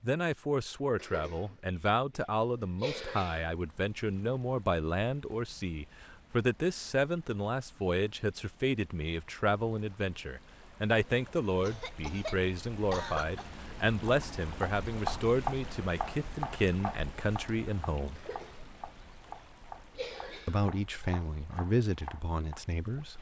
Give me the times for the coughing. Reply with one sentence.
You can hear the coughing from 0.9 to 1.6 s, from 2.8 to 3.5 s, from 11.6 to 13.5 s, from 18.1 to 18.7 s and from 19.9 to 20.6 s.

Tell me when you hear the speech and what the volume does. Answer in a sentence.
The speech can be heard from 0.0 to 18.2 s, at a steady volume; and briefly from 20.4 to 23.1 s.